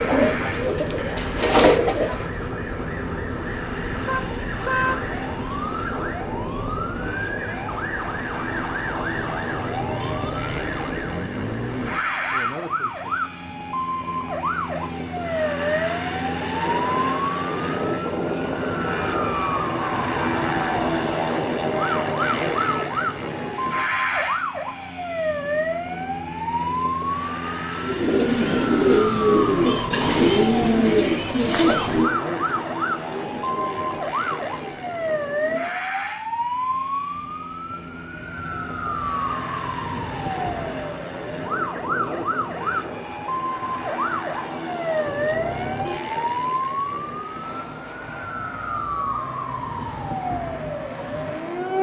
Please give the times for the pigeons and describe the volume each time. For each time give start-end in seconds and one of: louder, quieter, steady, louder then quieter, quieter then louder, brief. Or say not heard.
0.0-2.5 brief
27.8-35.9 quieter.